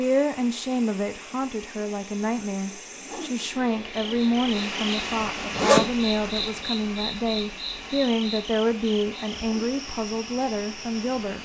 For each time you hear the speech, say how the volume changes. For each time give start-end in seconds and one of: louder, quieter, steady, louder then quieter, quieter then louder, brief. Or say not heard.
0.0-11.4 steady.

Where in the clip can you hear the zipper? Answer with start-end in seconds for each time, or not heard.
5.3-6.4.